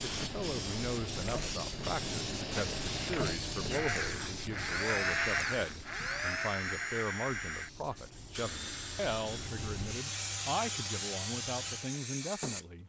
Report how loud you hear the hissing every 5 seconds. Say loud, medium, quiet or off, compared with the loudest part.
loud, medium, loud.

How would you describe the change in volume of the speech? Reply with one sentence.
The loudness of the speech stays about the same.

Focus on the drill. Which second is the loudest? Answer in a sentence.
The volume of the drill peaks at 5 seconds.